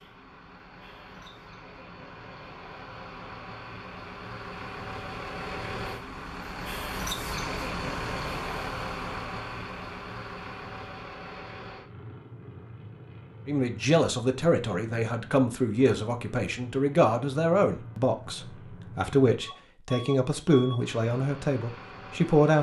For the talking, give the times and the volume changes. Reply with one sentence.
The talking can be heard from 13.4 to 22.5 s, at a steady volume.